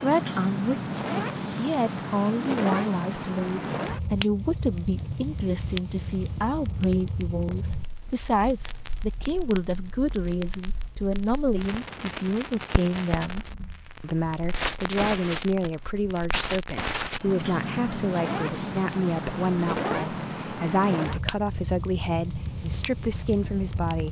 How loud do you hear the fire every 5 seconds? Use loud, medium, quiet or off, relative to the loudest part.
loud, medium, medium, loud, loud.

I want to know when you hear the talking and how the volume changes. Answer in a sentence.
The talking can be heard from 0.0 to 24.0 s, at a steady volume.